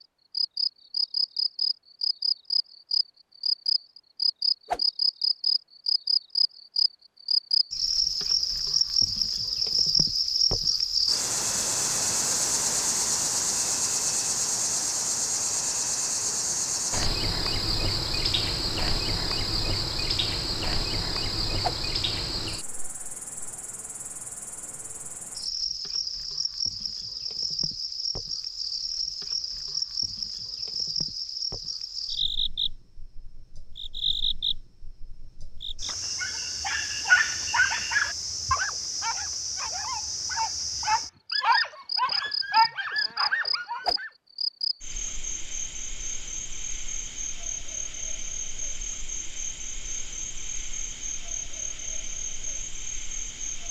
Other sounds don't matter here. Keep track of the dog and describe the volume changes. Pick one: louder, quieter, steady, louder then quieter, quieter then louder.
quieter then louder.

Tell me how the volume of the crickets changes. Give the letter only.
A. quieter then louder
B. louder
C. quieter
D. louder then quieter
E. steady
C.